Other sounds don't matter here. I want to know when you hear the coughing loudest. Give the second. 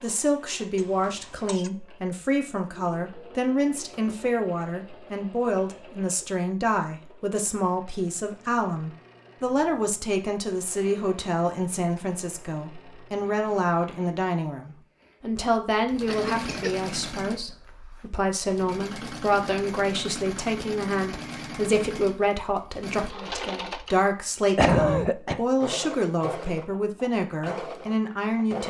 25 s.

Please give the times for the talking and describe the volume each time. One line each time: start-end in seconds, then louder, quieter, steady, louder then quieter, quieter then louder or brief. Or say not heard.
0.0-28.6 steady.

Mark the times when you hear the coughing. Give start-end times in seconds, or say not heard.
0.8-1.7, 16.1-16.9, 24.6-25.4.